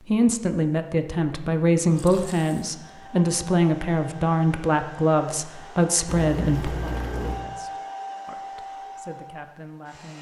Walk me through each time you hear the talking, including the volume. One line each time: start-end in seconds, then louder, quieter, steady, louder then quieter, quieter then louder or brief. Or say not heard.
0.1-10.1 quieter.